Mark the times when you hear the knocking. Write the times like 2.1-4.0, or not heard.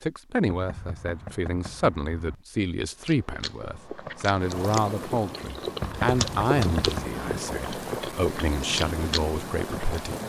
0.5-2.4, 5.8-7.2.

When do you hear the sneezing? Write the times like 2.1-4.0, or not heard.
not heard.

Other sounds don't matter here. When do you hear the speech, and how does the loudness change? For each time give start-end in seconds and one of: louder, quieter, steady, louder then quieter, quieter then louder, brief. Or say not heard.
0.0-10.2 steady.